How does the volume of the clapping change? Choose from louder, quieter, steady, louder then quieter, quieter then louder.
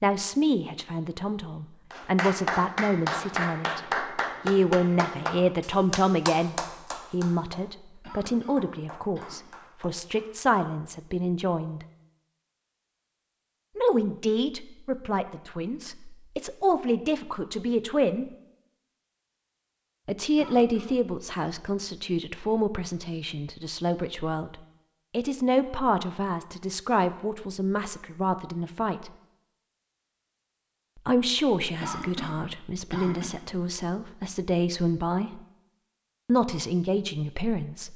quieter.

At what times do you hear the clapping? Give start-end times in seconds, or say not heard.
1.9-10.2.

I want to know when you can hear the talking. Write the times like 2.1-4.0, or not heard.
0.0-11.8, 13.8-18.2, 20.1-29.1, 31.1-35.4, 36.2-37.9.